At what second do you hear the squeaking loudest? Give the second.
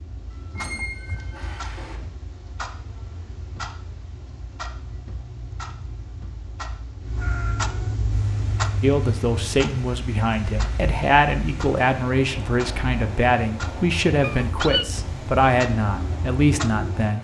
1 s.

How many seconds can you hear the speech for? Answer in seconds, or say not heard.
8 s.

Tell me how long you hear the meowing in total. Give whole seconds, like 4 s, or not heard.
2 s.